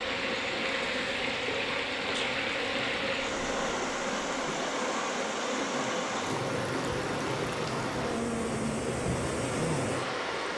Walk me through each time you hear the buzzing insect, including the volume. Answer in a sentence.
The buzzing insect can be heard from 0.0 to 10.5 s, at a steady volume.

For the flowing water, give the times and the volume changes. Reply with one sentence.
You can hear the flowing water from 0.0 to 10.5 s, at a steady volume.